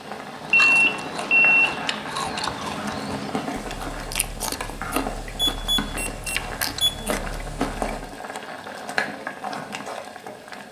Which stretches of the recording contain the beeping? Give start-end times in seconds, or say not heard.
0.5-1.8, 5.5-7.0.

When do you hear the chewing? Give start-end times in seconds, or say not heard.
0.3-8.2.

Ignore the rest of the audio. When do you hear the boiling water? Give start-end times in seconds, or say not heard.
0.0-10.6.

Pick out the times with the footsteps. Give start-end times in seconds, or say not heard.
not heard.